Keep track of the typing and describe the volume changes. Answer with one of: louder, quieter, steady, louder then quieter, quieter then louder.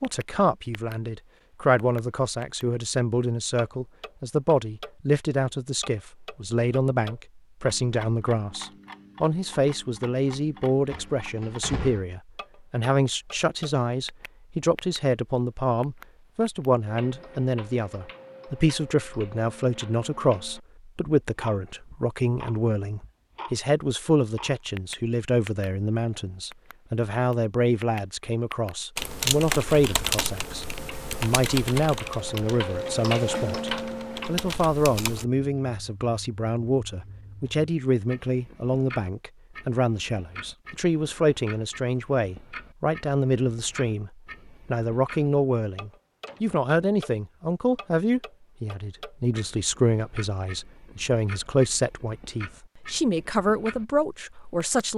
quieter then louder.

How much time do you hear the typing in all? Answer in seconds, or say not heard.
6 s.